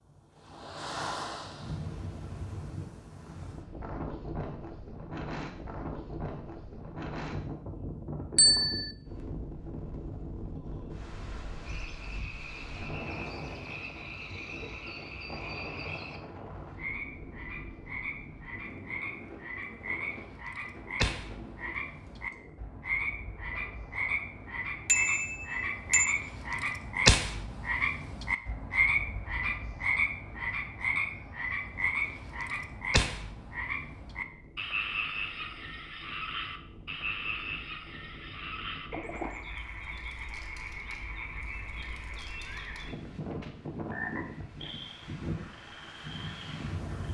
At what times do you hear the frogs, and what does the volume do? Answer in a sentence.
The frogs can be heard from 11.6 to 47.1 s, getting louder then quieter.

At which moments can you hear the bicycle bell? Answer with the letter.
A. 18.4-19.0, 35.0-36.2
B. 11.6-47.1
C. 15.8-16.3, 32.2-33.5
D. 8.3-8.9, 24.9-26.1
D.